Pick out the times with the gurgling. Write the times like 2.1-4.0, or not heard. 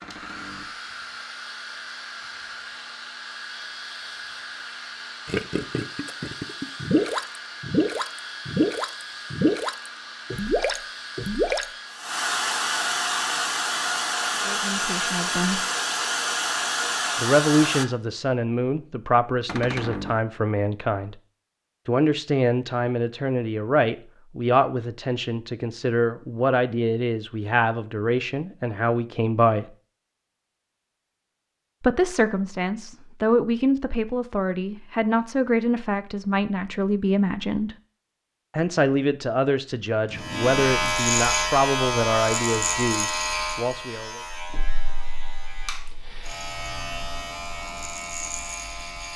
5.2-11.7.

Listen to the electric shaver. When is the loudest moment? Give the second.
41 s.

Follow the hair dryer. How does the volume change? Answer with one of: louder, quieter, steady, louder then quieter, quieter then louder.
louder.